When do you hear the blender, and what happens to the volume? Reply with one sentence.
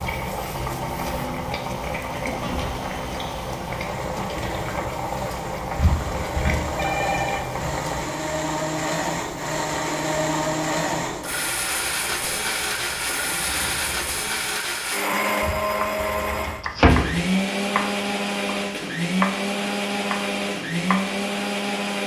The blender can be heard from 0.2 to 22.0 s, getting louder.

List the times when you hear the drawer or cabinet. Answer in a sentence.
You can hear the drawer or cabinet from 5.8 to 6.7 s and from 15.4 to 17.1 s.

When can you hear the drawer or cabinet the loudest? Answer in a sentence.
The loudest moment of the drawer or cabinet is at 17 seconds.